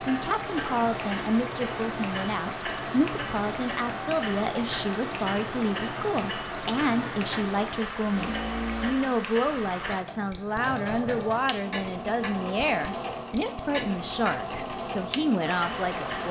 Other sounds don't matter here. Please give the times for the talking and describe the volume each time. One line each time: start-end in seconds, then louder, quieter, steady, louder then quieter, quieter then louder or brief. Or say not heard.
0.1-16.2 steady.